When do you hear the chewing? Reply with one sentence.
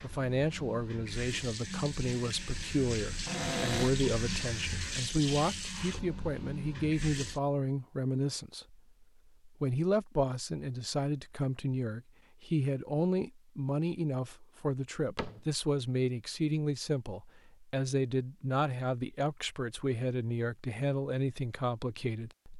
You can't hear the chewing here.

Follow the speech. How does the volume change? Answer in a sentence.
The loudness of the speech stays about the same.